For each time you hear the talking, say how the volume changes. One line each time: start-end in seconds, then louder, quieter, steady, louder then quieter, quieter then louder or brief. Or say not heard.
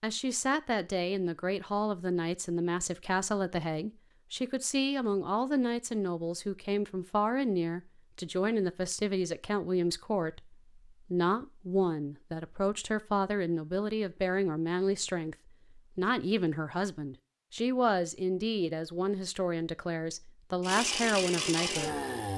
0.0-22.3 steady.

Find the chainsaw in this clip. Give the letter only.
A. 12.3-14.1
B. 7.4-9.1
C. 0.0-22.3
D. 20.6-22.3
D.